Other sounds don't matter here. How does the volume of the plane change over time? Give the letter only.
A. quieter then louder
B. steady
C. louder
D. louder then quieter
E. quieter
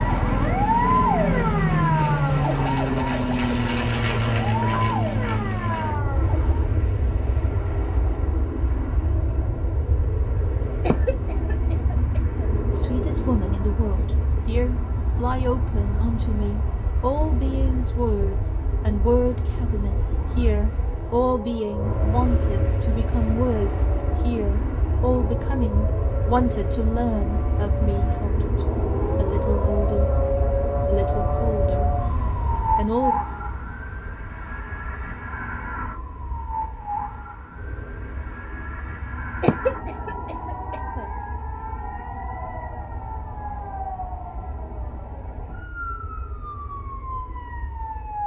E.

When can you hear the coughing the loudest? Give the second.
40 s.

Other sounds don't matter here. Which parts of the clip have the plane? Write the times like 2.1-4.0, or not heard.
0.0-48.2.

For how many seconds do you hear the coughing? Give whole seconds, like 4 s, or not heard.
3 s.